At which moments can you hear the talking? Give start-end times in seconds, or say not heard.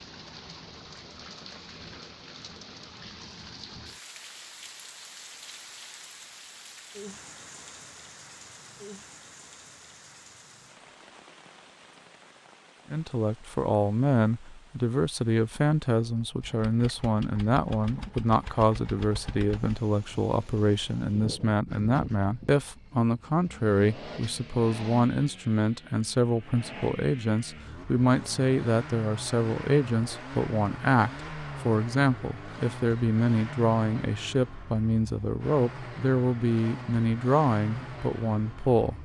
12.9-39.0.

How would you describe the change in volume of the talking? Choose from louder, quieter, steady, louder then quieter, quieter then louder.
steady.